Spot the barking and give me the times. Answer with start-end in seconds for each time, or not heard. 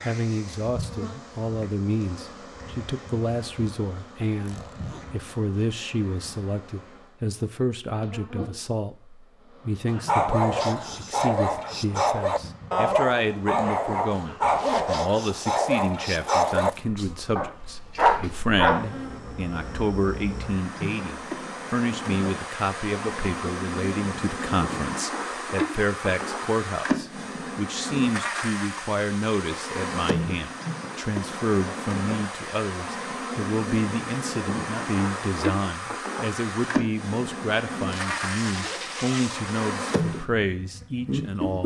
9.8-18.9.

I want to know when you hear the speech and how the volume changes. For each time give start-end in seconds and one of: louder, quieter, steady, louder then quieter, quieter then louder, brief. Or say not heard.
0.1-41.6 steady.